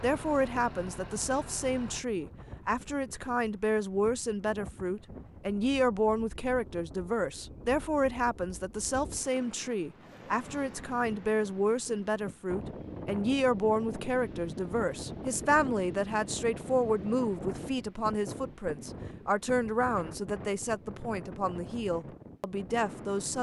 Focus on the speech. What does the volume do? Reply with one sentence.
The volume of the speech stays about the same.